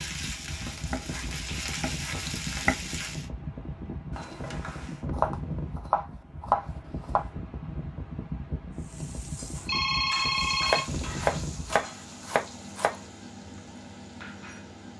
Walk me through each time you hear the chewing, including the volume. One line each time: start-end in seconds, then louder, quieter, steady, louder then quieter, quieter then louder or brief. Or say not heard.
not heard.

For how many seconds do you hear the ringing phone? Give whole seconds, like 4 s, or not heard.
2 s.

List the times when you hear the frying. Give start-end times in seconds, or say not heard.
0.0-3.3, 8.7-14.9.